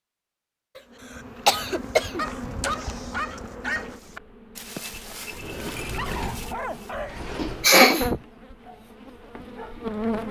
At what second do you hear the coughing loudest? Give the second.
8 s.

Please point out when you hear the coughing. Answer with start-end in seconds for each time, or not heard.
0.8-2.2, 7.3-8.1.